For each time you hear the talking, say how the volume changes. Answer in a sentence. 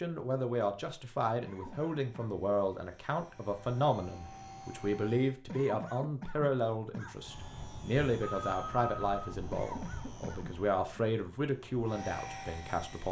The talking can be heard from 0.0 to 13.0 s, at a steady volume.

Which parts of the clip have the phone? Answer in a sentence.
The phone can be heard from 8.2 to 9.3 s.